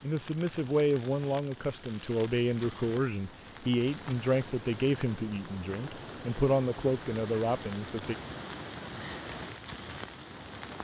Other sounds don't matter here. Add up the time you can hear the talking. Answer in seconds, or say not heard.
8 s.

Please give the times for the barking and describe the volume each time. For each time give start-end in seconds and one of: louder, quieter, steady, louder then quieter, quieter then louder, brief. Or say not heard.
not heard.